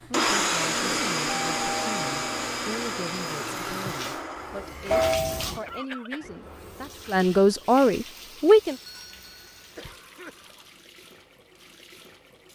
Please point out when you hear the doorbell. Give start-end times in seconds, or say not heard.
1.3-2.5, 4.9-5.6, 8.7-9.6.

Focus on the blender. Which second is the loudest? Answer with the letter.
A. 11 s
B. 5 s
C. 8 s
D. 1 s
D.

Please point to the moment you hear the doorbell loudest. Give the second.
5 s.